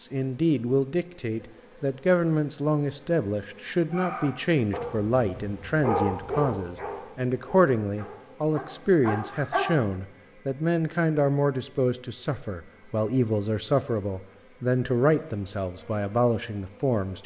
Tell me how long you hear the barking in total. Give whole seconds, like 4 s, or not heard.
6 s.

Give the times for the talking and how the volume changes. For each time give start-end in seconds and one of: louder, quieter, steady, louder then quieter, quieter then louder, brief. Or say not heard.
0.0-17.2 steady.